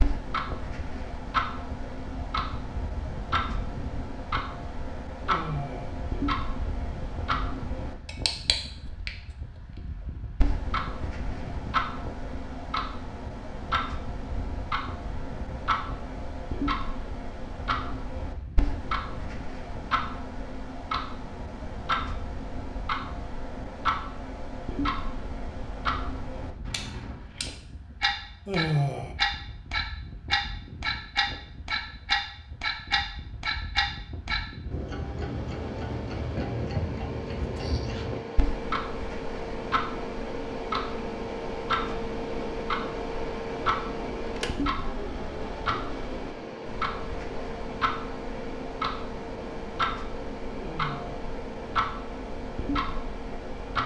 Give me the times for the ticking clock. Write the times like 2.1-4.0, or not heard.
0.0-53.8.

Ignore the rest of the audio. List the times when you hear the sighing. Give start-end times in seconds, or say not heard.
5.2-5.9, 28.4-29.1, 50.5-51.2.